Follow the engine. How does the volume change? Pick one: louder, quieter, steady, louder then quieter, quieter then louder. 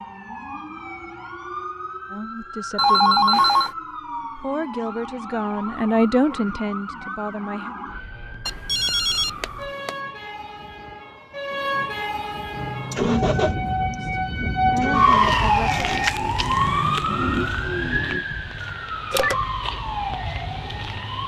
quieter then louder.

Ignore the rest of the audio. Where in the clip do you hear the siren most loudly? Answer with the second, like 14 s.
15 s.